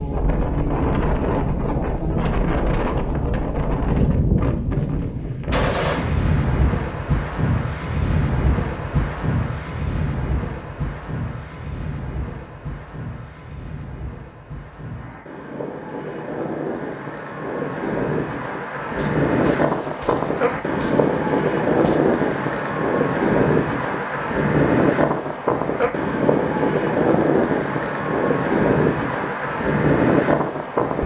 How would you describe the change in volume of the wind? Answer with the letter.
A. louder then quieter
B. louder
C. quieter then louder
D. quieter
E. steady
C.